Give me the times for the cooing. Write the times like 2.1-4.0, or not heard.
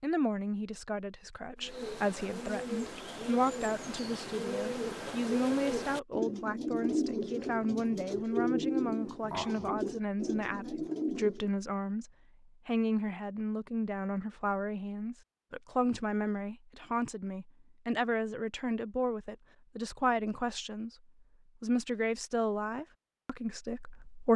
1.6-11.5.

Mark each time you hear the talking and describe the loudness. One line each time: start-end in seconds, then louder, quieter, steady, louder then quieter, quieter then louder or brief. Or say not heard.
0.0-20.9 steady
21.6-24.3 brief.